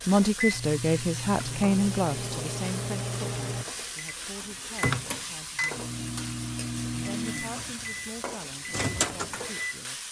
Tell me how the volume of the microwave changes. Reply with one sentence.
The volume of the microwave stays about the same.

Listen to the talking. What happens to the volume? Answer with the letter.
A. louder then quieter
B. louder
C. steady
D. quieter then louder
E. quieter
E.